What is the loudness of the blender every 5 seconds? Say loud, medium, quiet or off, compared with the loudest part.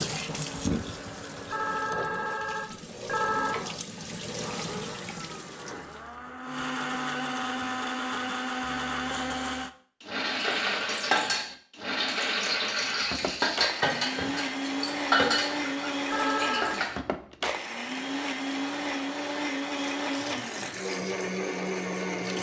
medium, loud, loud, loud, loud.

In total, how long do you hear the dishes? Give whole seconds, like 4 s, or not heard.
7 s.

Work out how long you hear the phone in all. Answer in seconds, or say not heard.
3 s.